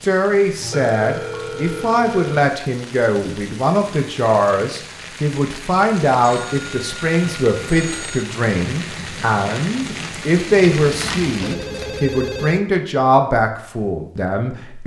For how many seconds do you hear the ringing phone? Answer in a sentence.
You can hear the ringing phone for 6 seconds altogether.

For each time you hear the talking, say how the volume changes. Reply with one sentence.
The talking can be heard from 0.0 to 14.8 s, at a steady volume.